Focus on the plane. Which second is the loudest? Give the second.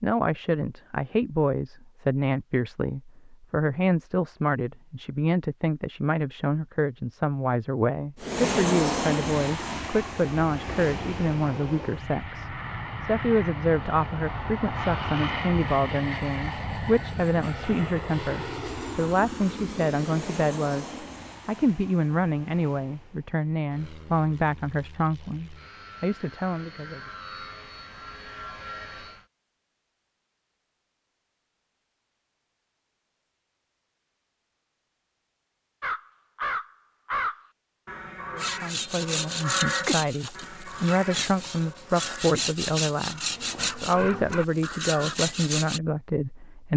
9 s.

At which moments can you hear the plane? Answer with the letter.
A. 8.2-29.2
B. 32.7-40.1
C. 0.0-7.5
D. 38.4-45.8
A.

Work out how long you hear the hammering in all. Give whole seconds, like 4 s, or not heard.
not heard.